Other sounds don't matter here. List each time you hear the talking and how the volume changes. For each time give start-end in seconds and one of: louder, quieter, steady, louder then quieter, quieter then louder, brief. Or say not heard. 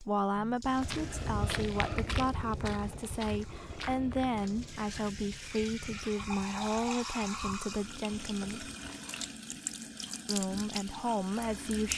0.0-8.7 steady
10.2-11.9 brief.